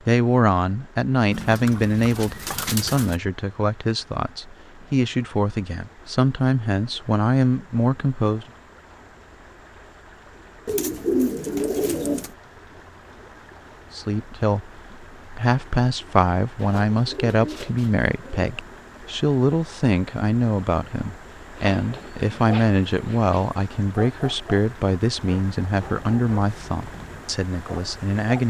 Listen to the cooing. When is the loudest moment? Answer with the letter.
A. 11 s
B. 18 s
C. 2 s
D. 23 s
A.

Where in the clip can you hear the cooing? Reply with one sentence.
You can hear the cooing from 1.3 to 3.1 s, from 10.7 to 12.3 s, from 16.6 to 18.5 s and from 21.6 to 23.5 s.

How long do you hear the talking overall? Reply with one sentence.
The talking can be heard for 23 seconds in total.